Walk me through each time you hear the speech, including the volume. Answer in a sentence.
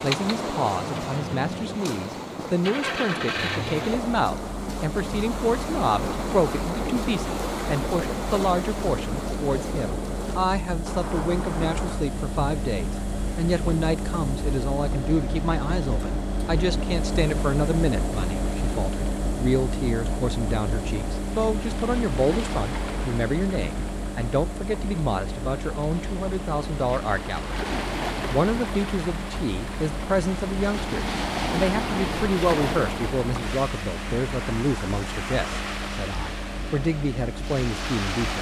You can hear the speech from 0.0 to 27.6 s, at a steady volume; and from 28.2 to 38.3 s, at a steady volume.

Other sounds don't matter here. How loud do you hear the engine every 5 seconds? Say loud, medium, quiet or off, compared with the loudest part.
loud, medium, loud, loud, loud, medium, medium, medium.